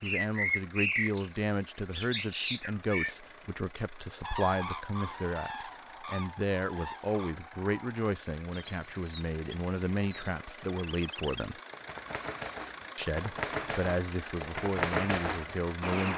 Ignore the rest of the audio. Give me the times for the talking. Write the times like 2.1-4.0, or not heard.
0.0-11.6, 12.9-16.1.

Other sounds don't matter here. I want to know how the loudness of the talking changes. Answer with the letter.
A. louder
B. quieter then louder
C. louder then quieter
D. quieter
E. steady
E.